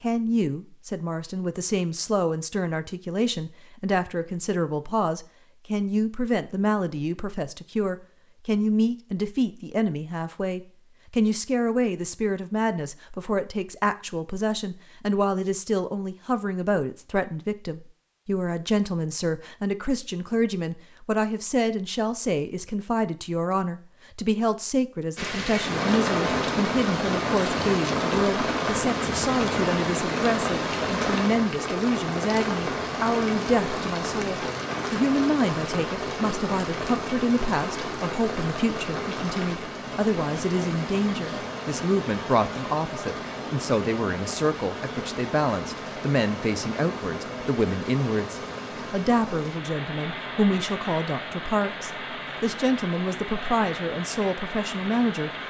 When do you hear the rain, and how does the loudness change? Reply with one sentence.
You can hear the rain from 25.1 to 55.4 s, getting quieter.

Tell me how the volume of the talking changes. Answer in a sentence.
The volume of the talking stays about the same.